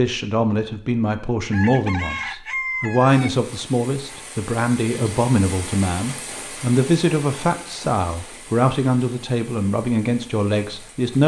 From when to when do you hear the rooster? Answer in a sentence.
The rooster can be heard from 1.5 to 3.3 s.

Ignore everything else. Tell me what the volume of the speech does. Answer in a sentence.
The loudness of the speech stays about the same.